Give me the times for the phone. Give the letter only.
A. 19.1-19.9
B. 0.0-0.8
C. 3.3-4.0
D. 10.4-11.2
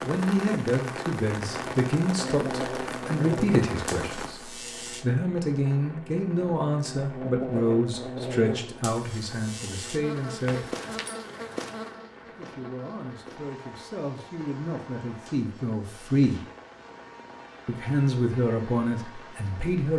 D.